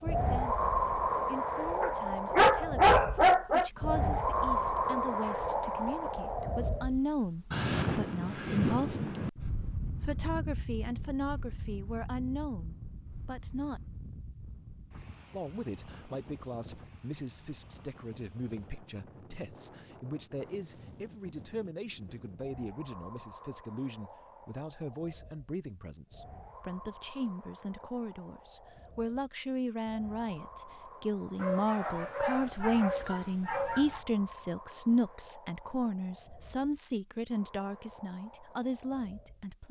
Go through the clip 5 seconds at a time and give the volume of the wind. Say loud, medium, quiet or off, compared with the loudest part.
loud, loud, quiet, quiet, quiet, quiet, quiet, quiet.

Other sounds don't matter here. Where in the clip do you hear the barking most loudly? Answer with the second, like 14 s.
3 s.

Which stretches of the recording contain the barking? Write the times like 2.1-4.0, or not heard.
1.8-3.7, 31.4-34.0.